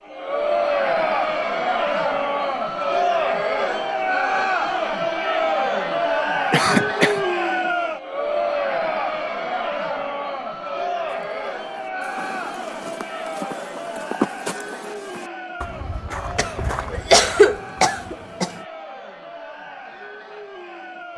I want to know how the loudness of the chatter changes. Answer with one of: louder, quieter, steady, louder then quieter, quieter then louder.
quieter.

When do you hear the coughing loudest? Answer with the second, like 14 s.
17 s.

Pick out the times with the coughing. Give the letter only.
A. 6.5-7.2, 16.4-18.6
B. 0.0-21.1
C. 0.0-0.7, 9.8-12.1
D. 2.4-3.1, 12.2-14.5
A.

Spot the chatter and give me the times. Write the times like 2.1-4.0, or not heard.
0.0-21.1.